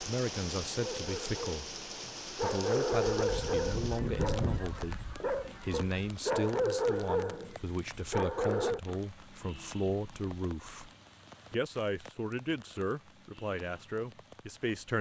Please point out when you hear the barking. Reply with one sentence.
You can hear the barking from 0.8 to 8.8 s.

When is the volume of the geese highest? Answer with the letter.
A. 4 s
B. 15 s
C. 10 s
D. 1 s
A.